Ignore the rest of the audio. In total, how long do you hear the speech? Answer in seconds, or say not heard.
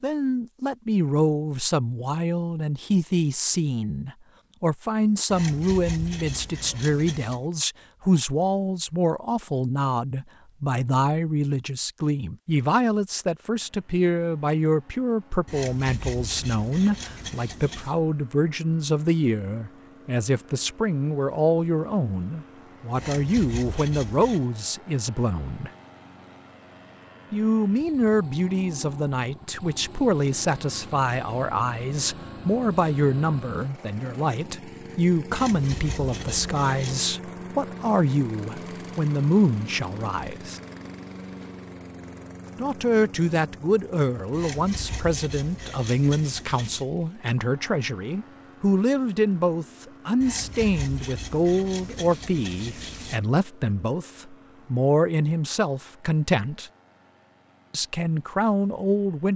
55 s.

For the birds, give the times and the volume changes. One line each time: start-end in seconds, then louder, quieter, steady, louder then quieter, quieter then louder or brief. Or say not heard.
not heard.